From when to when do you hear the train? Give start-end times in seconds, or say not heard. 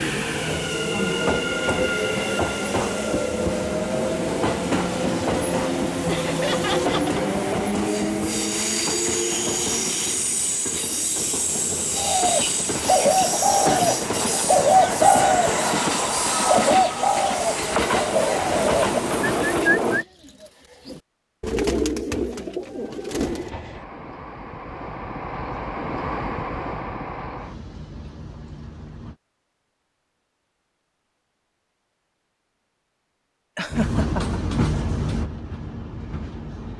0.0-20.1, 23.1-29.1, 33.7-36.7.